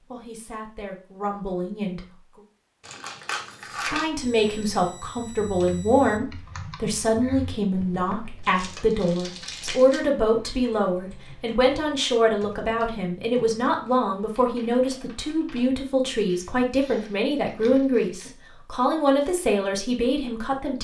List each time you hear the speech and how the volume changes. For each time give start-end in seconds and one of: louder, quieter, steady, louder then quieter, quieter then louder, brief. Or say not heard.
0.1-2.0 brief
3.8-20.7 steady.